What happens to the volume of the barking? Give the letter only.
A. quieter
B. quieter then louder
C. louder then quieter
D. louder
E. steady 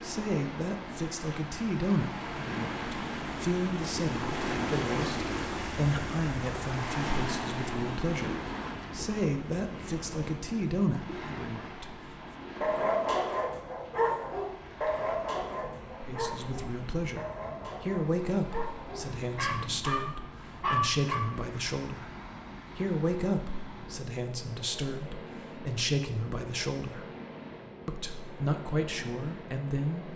B.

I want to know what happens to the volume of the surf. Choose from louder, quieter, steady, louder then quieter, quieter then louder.
quieter.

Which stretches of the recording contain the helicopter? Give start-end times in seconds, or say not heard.
not heard.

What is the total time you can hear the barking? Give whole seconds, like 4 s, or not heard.
9 s.